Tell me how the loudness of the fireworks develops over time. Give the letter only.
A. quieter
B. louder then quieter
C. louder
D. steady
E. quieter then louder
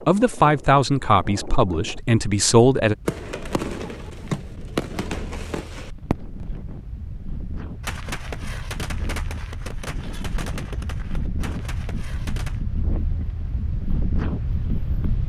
A.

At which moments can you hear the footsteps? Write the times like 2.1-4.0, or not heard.
not heard.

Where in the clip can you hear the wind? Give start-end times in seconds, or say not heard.
0.0-15.2.